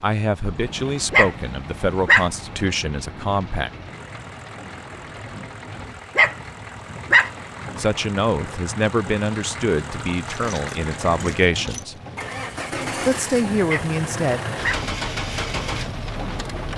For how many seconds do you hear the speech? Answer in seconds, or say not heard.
9 s.